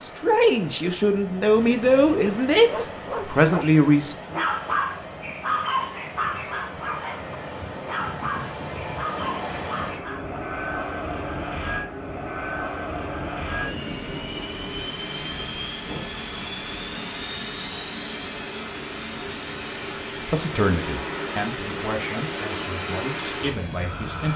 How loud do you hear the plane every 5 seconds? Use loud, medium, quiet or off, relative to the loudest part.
medium, loud, loud, loud, loud.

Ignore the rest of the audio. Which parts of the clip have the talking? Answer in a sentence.
You can hear the talking from 0.0 to 4.5 s and from 20.2 to 24.3 s.